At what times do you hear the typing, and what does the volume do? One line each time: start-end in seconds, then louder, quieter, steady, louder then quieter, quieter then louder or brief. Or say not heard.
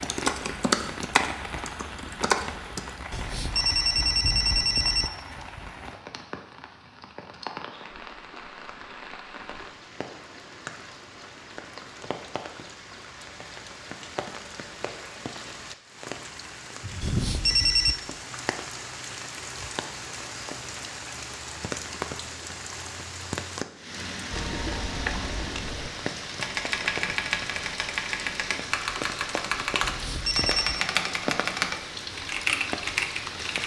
0.0-3.0 brief
24.3-33.6 louder.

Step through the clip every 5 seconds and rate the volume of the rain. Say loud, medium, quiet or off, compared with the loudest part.
loud, medium, medium, loud, loud, loud, loud.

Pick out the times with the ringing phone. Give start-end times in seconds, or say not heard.
3.1-5.1, 17.0-17.9, 29.8-30.9.